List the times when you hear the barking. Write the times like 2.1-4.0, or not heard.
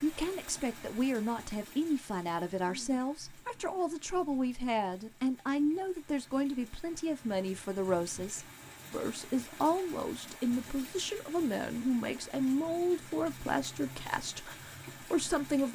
not heard.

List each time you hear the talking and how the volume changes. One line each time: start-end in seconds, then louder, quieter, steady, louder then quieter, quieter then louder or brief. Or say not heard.
0.0-15.6 steady.